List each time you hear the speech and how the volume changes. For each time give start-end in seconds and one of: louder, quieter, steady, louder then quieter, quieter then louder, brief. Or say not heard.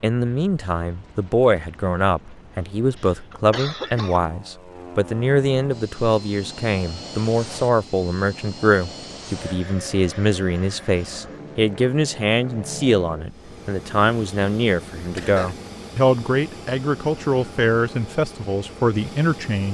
0.0-19.6 steady.